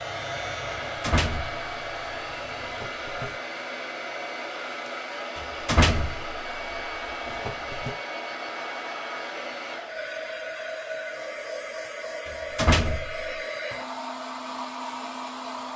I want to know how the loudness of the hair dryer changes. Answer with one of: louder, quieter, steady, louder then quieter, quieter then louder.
steady.